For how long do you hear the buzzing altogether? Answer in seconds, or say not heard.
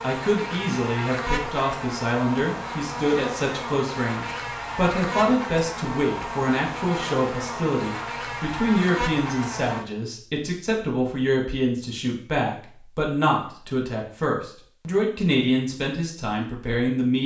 10 s.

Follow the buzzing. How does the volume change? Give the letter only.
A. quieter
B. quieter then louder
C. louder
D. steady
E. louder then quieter
D.